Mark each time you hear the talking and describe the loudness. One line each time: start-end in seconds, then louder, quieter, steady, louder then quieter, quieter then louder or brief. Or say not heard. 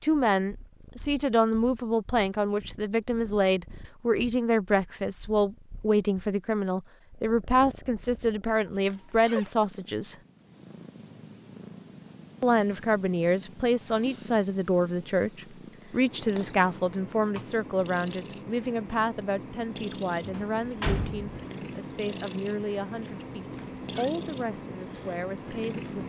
0.0-10.2 steady
12.4-26.0 quieter.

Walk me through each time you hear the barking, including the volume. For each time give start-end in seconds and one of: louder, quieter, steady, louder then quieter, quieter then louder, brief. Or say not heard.
not heard.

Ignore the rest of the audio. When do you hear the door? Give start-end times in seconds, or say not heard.
20.2-21.4.